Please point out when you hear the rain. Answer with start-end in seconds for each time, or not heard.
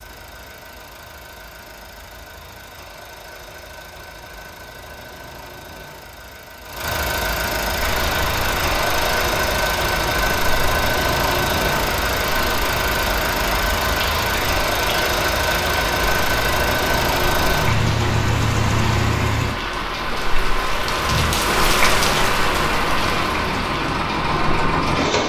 7.7-25.2.